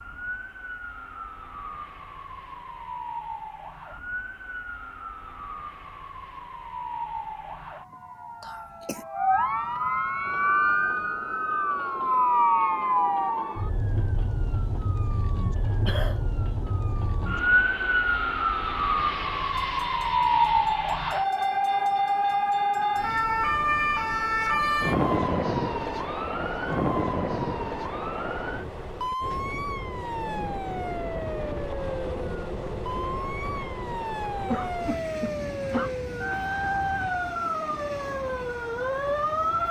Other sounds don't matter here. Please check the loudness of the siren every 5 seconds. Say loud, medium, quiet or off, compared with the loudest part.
quiet, medium, loud, loud, loud, medium, medium, medium.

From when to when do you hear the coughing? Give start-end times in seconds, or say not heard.
8.4-9.1, 15.8-16.2, 33.9-36.0.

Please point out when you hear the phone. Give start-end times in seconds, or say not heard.
not heard.